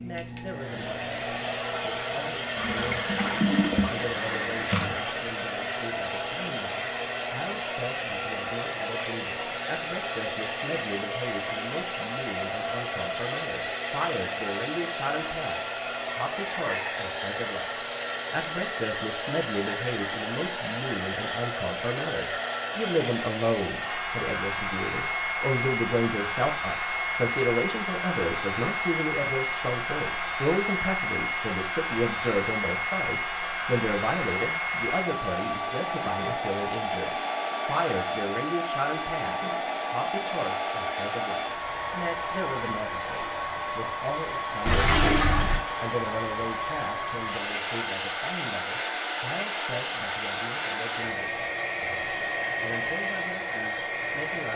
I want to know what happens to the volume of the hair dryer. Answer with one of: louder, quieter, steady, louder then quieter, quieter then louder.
steady.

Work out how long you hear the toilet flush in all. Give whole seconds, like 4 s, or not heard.
4 s.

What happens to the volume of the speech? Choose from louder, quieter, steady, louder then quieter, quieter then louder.
louder then quieter.